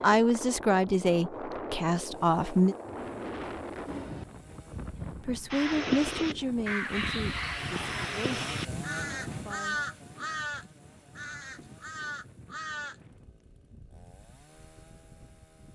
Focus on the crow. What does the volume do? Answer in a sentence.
The loudness of the crow goes down.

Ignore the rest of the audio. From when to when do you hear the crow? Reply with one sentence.
You can hear the crow from 5.5 to 12.9 s.